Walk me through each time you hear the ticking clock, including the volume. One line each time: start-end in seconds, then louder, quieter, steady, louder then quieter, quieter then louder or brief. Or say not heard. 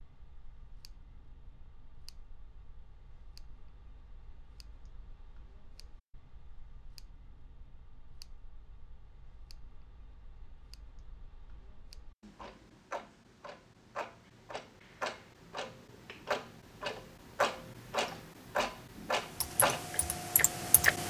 0.0-20.9 louder.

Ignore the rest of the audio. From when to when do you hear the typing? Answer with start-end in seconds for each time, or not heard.
19.2-21.0.